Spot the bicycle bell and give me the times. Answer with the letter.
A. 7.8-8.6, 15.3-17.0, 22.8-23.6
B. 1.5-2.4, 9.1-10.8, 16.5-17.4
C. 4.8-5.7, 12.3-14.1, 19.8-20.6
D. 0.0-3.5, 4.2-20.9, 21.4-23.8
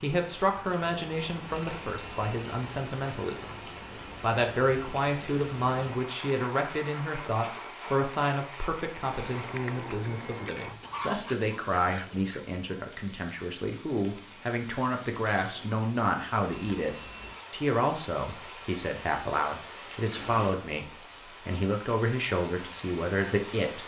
B.